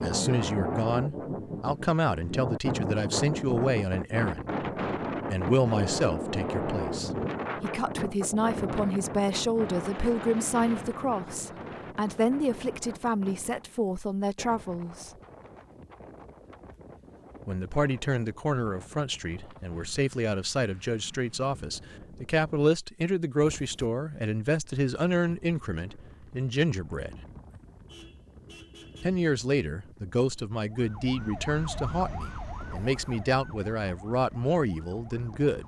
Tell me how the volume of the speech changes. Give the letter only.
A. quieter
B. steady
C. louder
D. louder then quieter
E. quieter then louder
B.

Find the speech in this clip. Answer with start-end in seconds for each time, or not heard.
0.0-4.5, 5.2-15.1, 17.4-27.1, 29.0-35.6.